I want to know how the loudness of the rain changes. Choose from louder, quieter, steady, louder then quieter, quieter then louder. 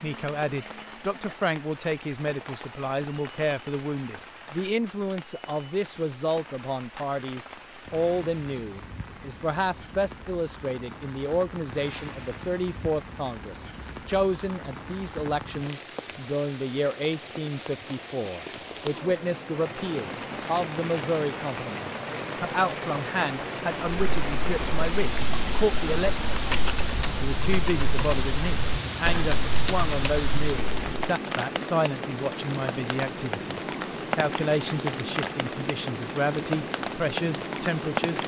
louder.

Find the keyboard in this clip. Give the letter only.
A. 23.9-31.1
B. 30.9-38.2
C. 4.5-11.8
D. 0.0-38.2
A.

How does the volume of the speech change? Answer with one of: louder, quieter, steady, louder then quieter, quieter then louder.
steady.